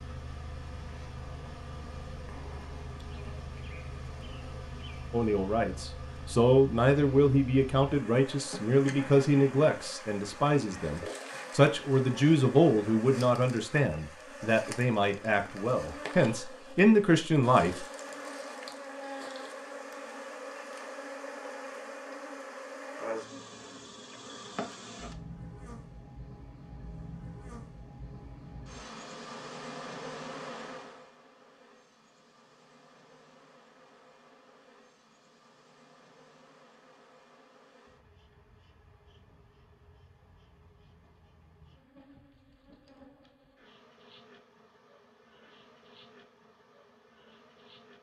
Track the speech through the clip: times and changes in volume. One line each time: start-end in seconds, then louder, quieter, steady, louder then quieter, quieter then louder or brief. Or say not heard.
5.1-17.9 steady.